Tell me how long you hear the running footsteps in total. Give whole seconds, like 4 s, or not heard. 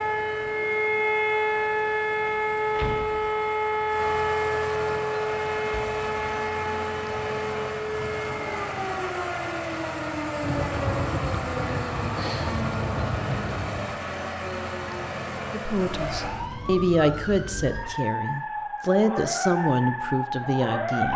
not heard.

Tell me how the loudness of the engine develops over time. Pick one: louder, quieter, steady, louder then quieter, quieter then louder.
louder.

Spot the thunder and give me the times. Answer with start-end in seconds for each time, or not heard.
10.4-14.0.